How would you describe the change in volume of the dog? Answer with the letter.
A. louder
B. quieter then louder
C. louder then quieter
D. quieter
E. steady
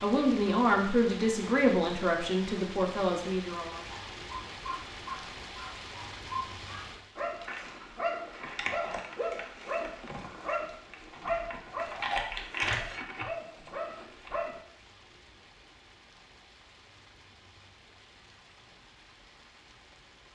A.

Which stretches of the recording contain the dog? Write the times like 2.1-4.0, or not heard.
3.8-14.6.